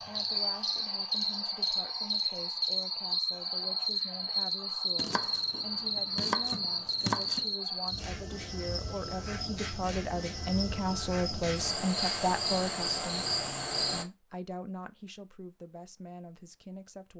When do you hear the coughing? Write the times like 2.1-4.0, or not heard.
not heard.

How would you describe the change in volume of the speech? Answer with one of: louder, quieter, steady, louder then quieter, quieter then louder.
louder then quieter.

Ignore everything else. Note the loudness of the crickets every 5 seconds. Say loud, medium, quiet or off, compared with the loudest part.
loud, loud, loud, off.